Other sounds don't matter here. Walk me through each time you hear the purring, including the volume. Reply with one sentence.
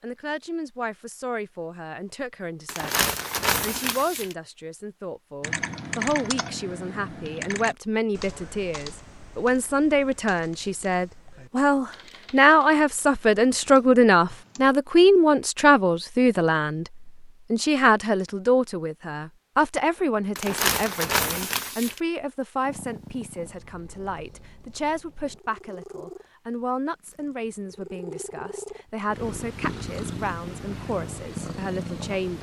The purring can be heard from 22.6 to 32.3 s, getting louder.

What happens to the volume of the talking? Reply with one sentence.
The volume of the talking goes up, then down.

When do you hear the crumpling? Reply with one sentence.
The crumpling can be heard from 2.6 to 4.3 s and from 20.4 to 22.0 s.